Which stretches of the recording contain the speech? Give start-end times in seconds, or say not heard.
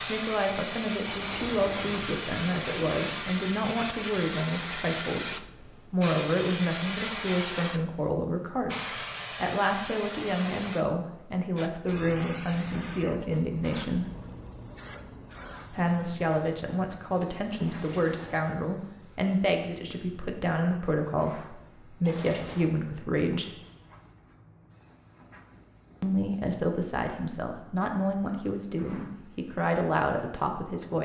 0.0-14.1, 15.7-23.6, 26.0-31.0.